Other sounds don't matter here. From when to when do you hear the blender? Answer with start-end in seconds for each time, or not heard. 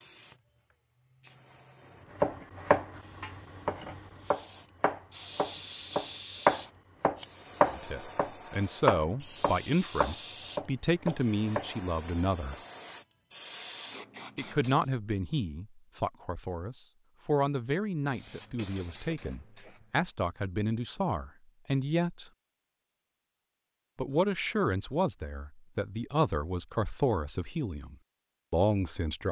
not heard.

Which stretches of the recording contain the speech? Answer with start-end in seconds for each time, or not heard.
7.7-12.6, 14.3-22.3, 23.9-29.2.